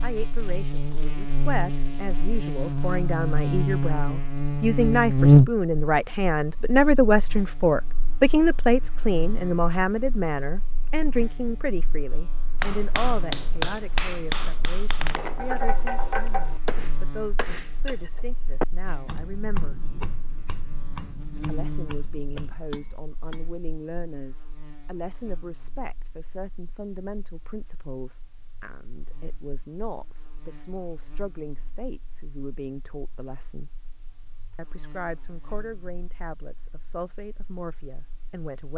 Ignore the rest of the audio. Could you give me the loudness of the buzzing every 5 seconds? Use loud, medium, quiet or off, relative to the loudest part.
medium, loud, quiet, quiet, quiet, quiet, quiet, quiet.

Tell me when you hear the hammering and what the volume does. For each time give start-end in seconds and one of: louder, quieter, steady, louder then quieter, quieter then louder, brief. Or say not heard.
12.6-23.4 quieter.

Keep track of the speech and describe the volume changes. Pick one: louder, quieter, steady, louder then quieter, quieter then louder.
quieter.